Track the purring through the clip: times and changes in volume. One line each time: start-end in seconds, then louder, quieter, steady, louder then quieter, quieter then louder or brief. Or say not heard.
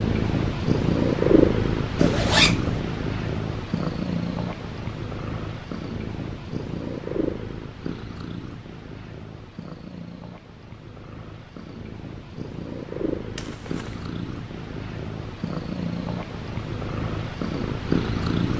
0.0-18.5 quieter then louder.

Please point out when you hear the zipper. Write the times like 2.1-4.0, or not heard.
1.9-2.8, 13.3-14.1.